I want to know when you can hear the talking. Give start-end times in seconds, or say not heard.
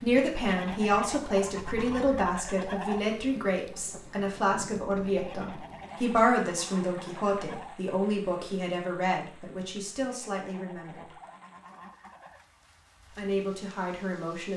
0.0-11.2, 13.2-14.5.